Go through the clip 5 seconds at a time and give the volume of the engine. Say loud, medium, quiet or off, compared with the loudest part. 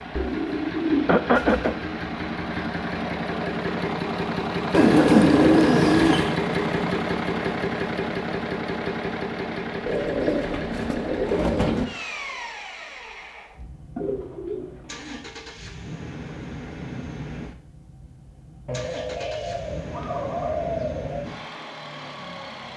loud, loud, medium, quiet, medium.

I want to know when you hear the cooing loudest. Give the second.
5 s.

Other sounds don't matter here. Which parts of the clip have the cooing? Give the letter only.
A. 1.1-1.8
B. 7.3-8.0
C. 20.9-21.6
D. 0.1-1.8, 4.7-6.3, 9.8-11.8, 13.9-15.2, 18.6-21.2
D.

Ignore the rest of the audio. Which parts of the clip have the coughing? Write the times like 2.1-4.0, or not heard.
1.1-1.8.